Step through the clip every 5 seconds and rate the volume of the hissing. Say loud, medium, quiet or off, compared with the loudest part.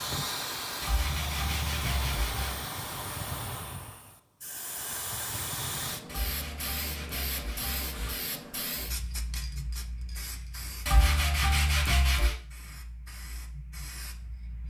loud, loud, medium.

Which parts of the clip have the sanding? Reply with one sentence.
The sanding can be heard from 0.8 to 2.6 s, from 6.0 to 8.2 s and from 10.8 to 12.3 s.